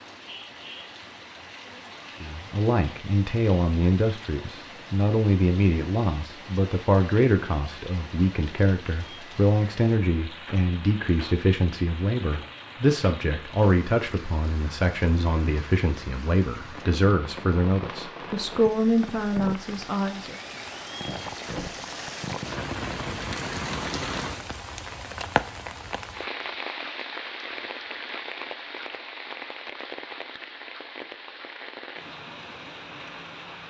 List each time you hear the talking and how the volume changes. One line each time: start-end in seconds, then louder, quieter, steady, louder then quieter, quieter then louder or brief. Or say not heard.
2.2-20.4 steady.